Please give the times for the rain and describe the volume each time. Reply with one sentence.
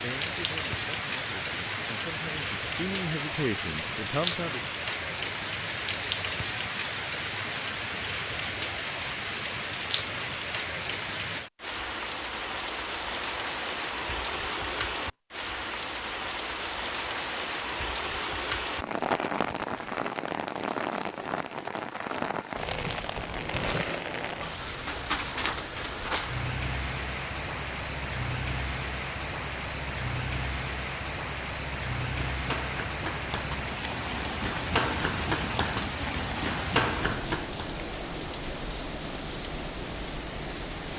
You can hear the rain from 0.0 to 40.9 s, at a steady volume.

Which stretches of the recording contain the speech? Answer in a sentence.
You can hear the speech from 0.0 to 4.6 s.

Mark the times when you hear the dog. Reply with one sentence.
You can't hear the dog here.